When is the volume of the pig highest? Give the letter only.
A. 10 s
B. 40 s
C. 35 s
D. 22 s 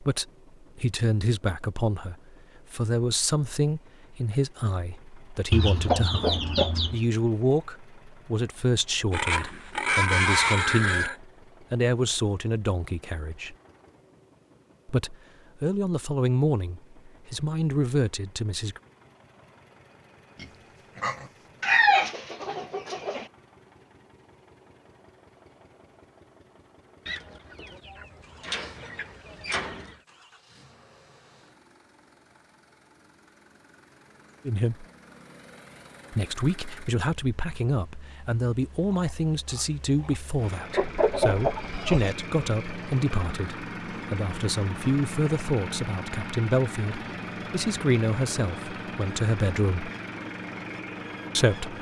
A.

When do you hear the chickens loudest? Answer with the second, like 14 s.
22 s.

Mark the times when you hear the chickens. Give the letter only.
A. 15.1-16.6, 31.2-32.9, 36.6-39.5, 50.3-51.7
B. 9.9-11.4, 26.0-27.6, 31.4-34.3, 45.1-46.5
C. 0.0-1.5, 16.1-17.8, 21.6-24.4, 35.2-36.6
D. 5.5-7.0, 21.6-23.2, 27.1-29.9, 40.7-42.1
D.